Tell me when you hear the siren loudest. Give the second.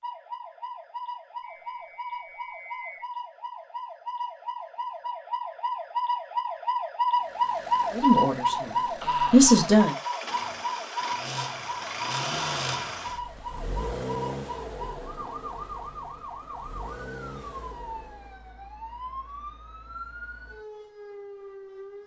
8 s.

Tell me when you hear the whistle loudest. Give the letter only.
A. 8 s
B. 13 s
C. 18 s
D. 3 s
D.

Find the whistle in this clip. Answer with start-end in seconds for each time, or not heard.
1.4-3.0.